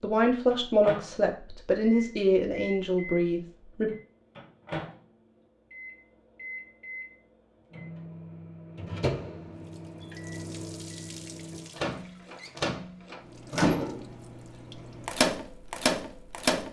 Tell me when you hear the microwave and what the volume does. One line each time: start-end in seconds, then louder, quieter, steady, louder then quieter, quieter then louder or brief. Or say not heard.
0.5-16.6 louder.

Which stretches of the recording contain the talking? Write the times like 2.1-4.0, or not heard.
0.0-3.9.